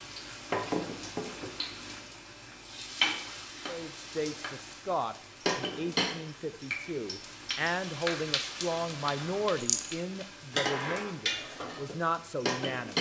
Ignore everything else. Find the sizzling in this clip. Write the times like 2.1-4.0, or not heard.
0.0-12.9.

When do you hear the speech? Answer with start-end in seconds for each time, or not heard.
3.6-12.9.